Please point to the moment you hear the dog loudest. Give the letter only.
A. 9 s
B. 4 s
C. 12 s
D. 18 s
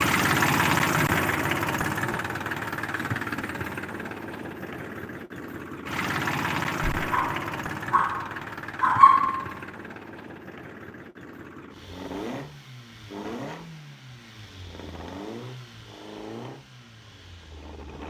A.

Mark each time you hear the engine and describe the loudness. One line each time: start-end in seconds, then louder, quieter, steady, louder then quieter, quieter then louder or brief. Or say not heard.
0.0-18.0 quieter.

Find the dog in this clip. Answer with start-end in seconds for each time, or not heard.
7.0-9.5.